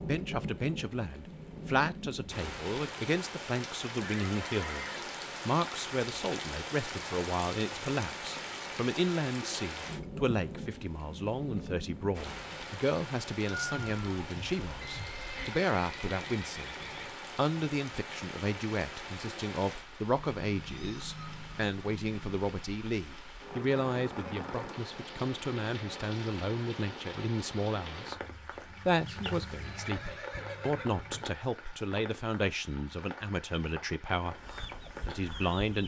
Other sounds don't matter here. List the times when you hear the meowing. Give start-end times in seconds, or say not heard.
13.4-15.5, 20.1-22.4.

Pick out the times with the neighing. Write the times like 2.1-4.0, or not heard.
4.0-5.2, 14.8-17.1, 29.6-31.2.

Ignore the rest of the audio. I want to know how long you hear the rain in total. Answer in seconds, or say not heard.
36 s.